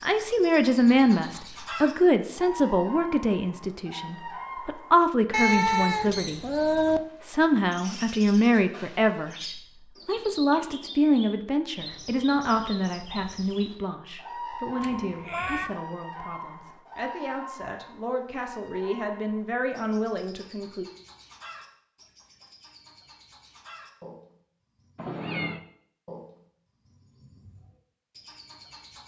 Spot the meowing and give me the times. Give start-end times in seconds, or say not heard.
5.3-7.0, 14.8-15.7, 24.9-25.6.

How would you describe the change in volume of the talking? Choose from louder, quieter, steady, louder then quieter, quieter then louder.
quieter.